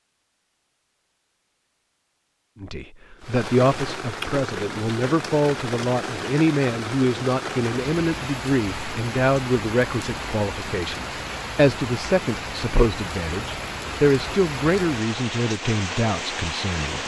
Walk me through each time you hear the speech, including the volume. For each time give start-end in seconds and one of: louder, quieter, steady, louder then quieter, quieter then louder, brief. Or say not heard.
2.6-17.0 steady.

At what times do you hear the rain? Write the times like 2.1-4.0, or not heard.
3.2-17.0.